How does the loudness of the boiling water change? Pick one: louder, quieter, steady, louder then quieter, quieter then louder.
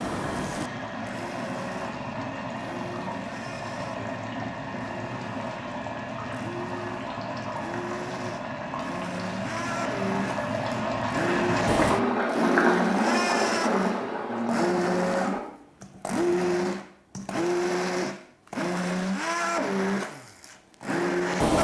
louder.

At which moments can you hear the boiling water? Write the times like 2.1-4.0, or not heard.
0.0-15.4.